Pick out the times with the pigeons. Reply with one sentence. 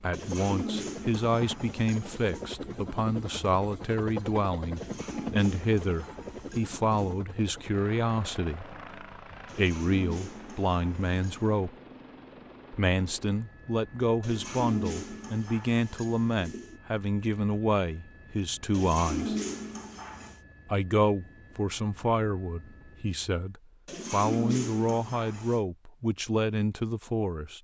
You can hear the pigeons from 0.1 to 2.5 s, from 4.8 to 7.2 s, from 9.4 to 11.6 s, from 14.2 to 16.8 s, from 18.7 to 20.4 s and from 23.9 to 25.6 s.